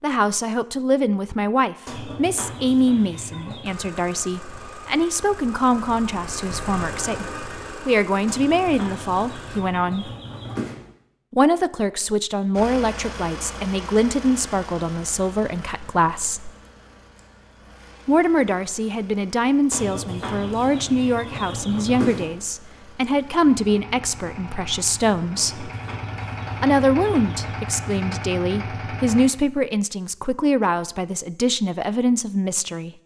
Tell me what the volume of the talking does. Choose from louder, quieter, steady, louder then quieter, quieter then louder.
steady.